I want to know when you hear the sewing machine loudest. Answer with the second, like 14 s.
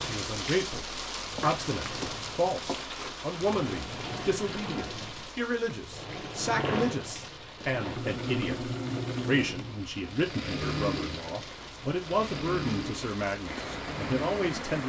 9 s.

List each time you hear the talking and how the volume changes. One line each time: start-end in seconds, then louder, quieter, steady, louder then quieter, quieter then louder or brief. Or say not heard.
0.0-14.8 steady.